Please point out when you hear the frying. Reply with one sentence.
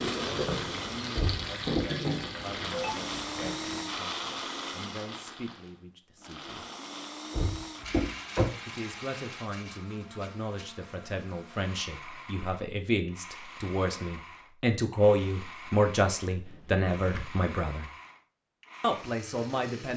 The frying can be heard from 0.0 to 3.9 s.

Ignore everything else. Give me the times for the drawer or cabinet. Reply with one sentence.
The drawer or cabinet can be heard from 1.1 to 1.9 s, from 7.3 to 8.5 s and from 16.4 to 17.4 s.